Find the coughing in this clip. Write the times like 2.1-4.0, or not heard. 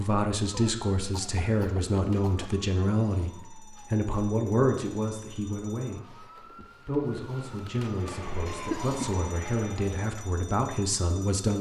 0.5-2.5, 8.4-8.9.